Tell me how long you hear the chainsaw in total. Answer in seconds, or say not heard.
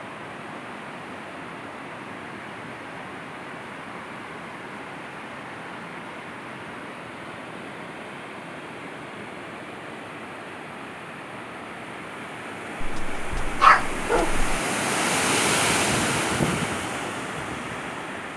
not heard.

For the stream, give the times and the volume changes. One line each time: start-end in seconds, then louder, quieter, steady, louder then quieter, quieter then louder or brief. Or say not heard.
0.0-18.3 louder.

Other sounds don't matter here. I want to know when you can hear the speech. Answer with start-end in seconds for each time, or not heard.
not heard.